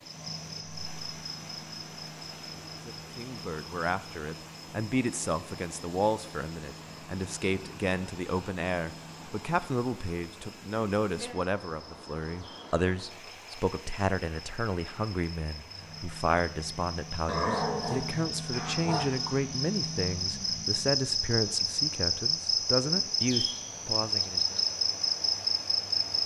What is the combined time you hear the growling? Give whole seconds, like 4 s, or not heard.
2 s.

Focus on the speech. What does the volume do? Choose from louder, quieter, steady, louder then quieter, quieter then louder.
steady.